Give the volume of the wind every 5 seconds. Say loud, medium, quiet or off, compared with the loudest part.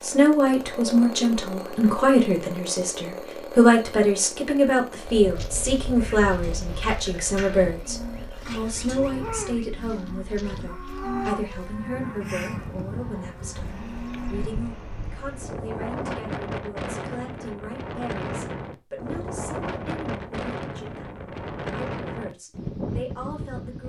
off, medium, medium, loud, loud.